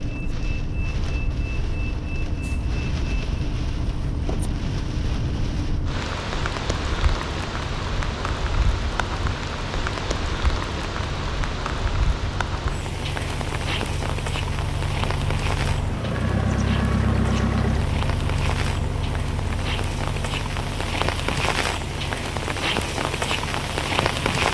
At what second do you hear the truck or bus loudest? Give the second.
17 s.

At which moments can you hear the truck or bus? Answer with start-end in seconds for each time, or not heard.
0.0-24.4.